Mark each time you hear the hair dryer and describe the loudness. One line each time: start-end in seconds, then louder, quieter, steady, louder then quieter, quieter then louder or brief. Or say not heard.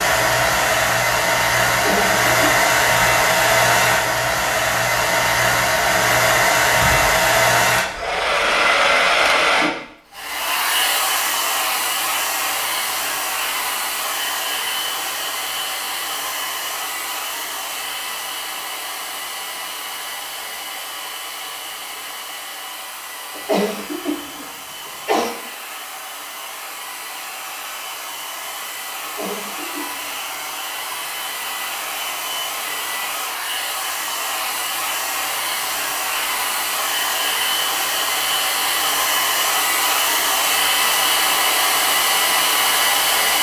0.0-43.3 quieter then louder.